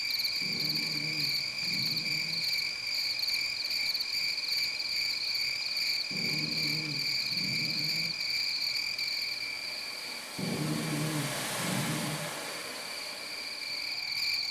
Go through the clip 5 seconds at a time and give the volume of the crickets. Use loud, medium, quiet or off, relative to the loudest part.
loud, loud, medium.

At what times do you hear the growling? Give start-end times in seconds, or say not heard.
0.4-2.4, 6.1-8.1, 10.3-12.3.